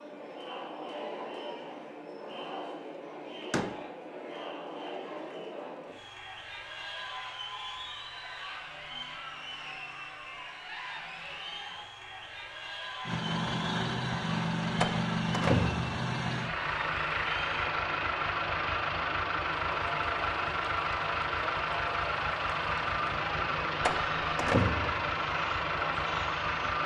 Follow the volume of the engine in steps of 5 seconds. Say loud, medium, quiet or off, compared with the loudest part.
off, off, loud, loud, loud, loud.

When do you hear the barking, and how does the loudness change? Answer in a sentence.
The barking can't be heard in this clip.